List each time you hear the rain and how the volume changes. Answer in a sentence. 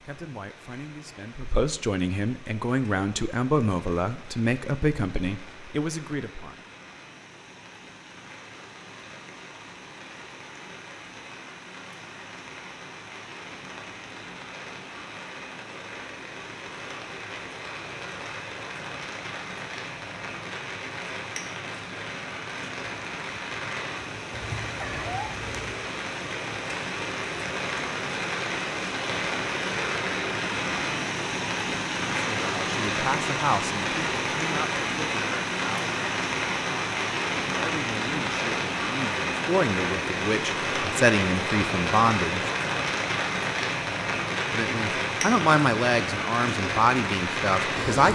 The rain can be heard from 0.0 to 48.1 s, getting louder.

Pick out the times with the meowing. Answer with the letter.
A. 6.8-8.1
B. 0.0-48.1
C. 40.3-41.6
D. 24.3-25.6
D.